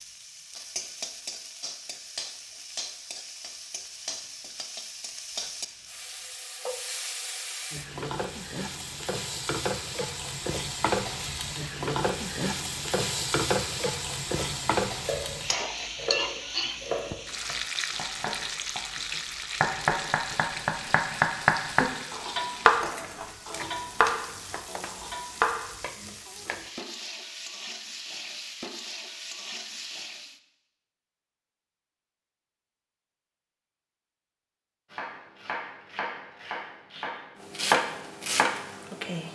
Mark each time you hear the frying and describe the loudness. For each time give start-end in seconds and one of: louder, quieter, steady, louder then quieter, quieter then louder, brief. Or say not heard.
0.0-30.4 louder then quieter.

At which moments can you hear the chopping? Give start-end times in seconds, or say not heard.
14.4-25.6, 34.9-39.2.